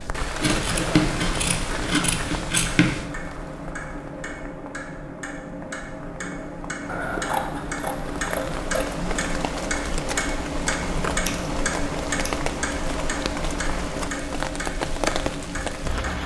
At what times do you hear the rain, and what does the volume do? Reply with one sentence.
You can hear the rain from 0.0 to 16.2 s, getting quieter then louder.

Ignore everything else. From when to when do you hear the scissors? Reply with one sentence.
The scissors can be heard from 0.4 to 3.0 s, from 6.8 to 8.8 s and from 11.2 to 12.3 s.